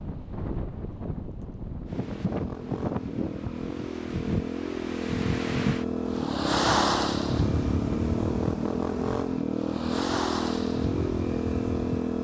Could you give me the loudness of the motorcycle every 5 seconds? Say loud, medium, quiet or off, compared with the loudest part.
medium, loud, loud.